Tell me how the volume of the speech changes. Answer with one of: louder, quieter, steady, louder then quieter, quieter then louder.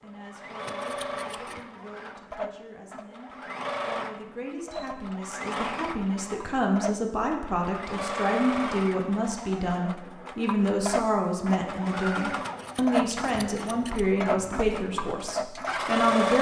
louder.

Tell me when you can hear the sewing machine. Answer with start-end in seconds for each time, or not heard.
0.0-16.3.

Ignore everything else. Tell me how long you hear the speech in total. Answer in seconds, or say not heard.
16 s.